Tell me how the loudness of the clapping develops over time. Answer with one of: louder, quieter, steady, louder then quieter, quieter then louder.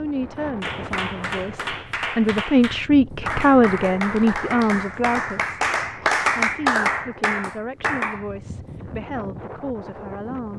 louder.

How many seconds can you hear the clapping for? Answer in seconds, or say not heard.
8 s.